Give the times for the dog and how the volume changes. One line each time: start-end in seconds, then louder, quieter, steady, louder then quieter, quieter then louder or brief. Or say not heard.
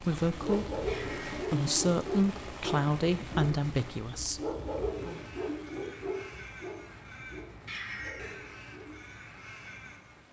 0.2-8.9 quieter.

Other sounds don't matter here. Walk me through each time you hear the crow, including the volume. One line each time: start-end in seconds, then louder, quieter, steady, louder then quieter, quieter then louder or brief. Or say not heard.
4.9-10.2 steady.